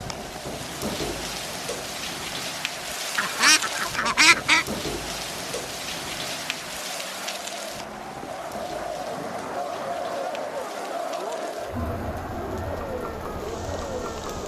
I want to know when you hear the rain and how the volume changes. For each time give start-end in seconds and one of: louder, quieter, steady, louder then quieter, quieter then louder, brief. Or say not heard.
0.0-14.4 quieter.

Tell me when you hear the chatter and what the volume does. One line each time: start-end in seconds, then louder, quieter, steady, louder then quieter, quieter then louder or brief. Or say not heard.
0.0-14.4 louder.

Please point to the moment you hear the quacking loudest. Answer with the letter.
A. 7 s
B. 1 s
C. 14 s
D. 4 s
D.